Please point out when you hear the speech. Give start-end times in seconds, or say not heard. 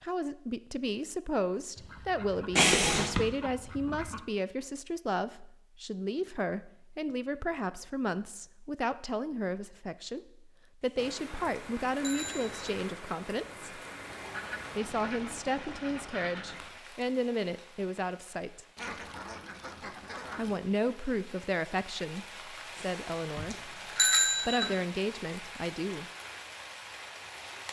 0.0-10.2, 10.8-13.7, 14.8-18.6, 20.4-26.1.